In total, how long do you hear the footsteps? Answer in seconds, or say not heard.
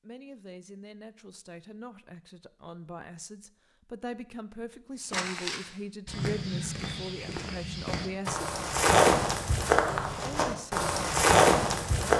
7 s.